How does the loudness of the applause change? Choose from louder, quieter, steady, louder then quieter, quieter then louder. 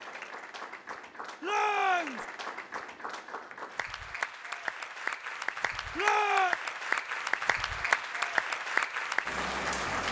louder.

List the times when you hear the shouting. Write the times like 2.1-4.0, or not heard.
1.4-2.2, 6.0-6.5.